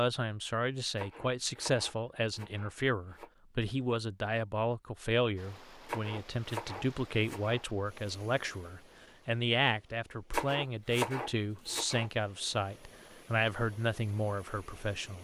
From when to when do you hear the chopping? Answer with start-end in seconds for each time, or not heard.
0.9-3.3, 5.8-7.6, 10.3-12.1.